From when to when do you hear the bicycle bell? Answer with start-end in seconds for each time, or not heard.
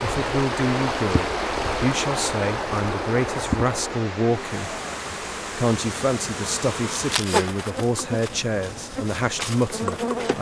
not heard.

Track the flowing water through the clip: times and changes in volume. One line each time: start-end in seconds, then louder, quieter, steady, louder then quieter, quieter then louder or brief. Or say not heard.
0.0-10.3 quieter.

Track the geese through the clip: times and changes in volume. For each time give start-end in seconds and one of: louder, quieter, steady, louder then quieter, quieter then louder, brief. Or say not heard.
not heard.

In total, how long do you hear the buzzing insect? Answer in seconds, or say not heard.
6 s.